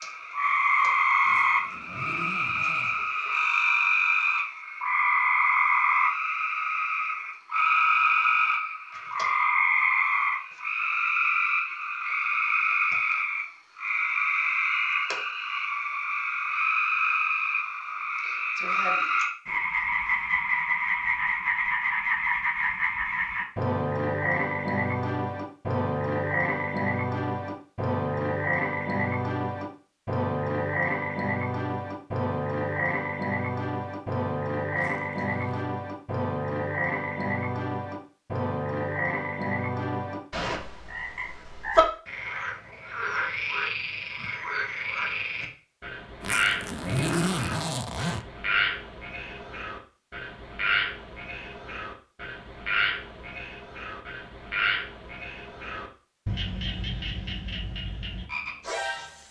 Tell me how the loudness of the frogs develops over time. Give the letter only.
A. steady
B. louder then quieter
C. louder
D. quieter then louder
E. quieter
E.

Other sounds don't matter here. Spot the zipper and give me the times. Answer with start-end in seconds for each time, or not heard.
1.2-3.0, 34.7-35.6, 46.2-48.2.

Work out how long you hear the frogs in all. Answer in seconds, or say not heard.
59 s.